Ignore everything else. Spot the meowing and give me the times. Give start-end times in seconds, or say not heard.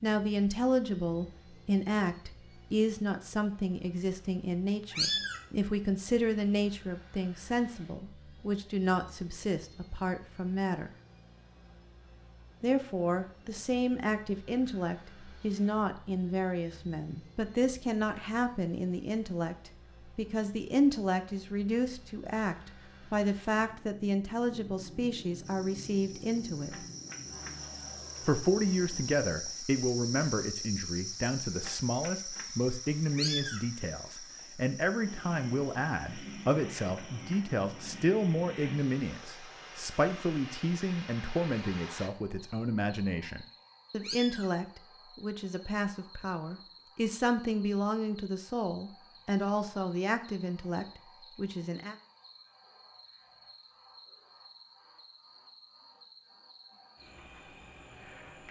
4.9-5.4, 33.1-33.6, 44.0-44.5.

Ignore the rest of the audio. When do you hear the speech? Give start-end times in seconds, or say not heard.
0.0-10.9, 12.6-26.8, 28.2-52.0.